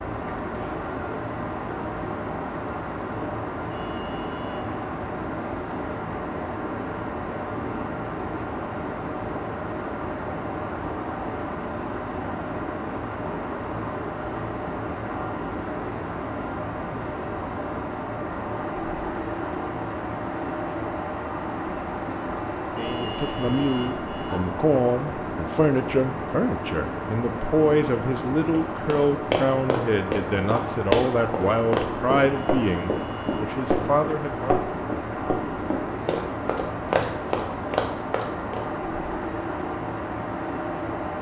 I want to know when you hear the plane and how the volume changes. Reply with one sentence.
You can hear the plane from 0.0 to 41.1 s, at a steady volume.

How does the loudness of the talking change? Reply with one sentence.
The loudness of the talking stays about the same.